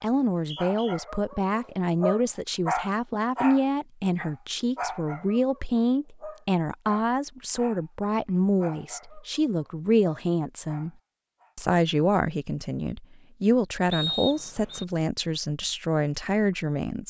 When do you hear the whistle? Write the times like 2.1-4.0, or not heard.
0.3-0.9, 13.9-14.8.